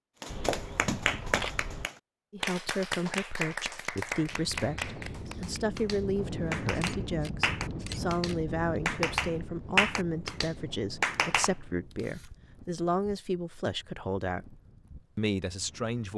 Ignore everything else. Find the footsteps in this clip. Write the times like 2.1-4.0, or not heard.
not heard.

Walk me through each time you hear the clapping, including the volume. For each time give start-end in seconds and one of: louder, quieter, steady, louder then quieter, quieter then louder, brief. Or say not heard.
0.2-11.7 quieter then louder.